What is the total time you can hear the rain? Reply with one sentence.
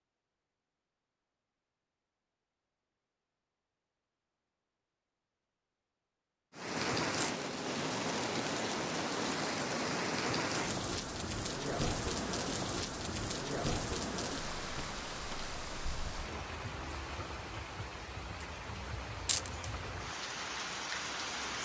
You can hear the rain for 15 seconds altogether.